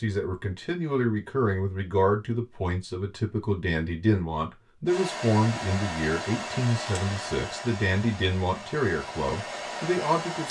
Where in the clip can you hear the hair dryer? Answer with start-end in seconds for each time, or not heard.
4.8-10.4.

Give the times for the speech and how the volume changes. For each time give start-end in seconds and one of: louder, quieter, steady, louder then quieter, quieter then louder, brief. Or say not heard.
0.0-10.4 steady.